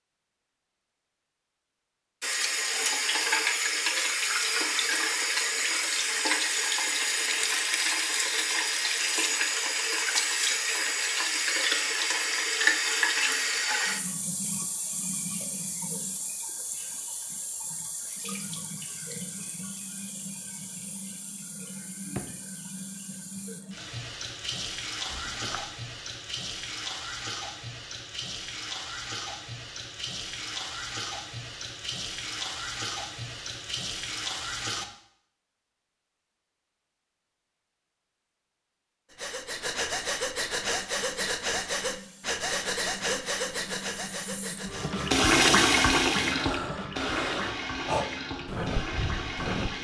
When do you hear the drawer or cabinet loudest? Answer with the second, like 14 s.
22 s.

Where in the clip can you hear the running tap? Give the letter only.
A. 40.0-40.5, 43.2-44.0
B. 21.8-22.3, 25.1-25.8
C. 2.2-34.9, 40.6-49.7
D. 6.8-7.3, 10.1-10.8
C.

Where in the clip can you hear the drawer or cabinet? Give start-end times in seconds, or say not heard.
21.8-22.3, 25.1-25.8.